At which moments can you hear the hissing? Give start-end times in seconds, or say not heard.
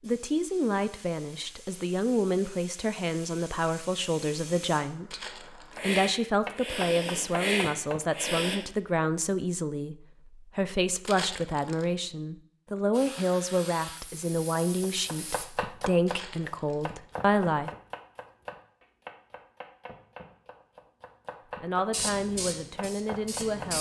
0.0-8.6, 12.9-15.4, 21.9-23.7.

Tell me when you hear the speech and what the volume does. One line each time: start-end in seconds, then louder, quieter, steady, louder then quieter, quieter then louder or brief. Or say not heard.
0.0-17.7 steady
21.6-23.7 brief.